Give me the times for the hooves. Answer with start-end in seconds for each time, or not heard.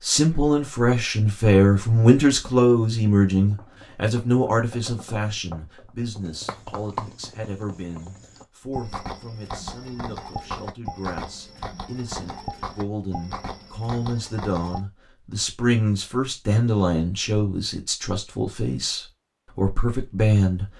3.4-14.8.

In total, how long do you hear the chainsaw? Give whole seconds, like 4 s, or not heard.
not heard.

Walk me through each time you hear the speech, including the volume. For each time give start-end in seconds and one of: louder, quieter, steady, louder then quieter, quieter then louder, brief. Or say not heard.
0.0-20.6 quieter then louder.